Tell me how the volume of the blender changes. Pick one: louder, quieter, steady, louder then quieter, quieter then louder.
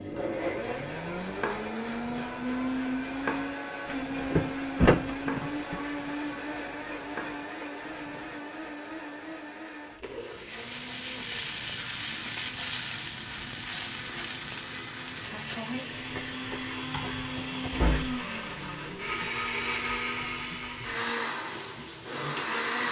quieter then louder.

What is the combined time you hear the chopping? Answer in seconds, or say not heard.
10 s.